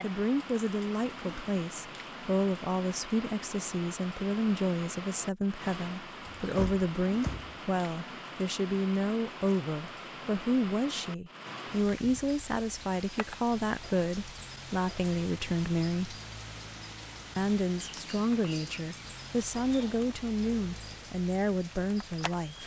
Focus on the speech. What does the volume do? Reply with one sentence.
The loudness of the speech stays about the same.